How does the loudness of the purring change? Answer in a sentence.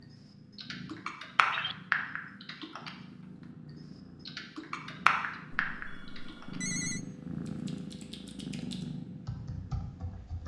The volume of the purring goes up.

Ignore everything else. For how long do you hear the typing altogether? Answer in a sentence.
The typing can be heard for 8 seconds in total.